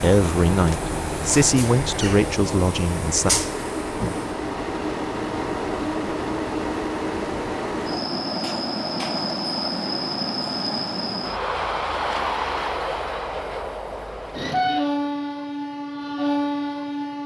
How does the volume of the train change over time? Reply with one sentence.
The volume of the train stays about the same.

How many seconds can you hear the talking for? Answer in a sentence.
You can hear the talking for 3 seconds altogether.